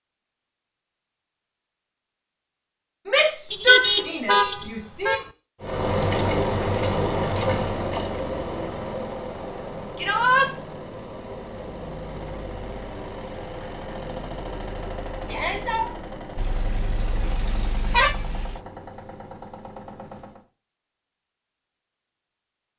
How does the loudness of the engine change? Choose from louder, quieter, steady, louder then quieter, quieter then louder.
quieter.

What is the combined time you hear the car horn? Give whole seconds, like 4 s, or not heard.
4 s.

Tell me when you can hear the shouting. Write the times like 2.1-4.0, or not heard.
3.0-5.2, 9.9-10.5, 15.2-15.9.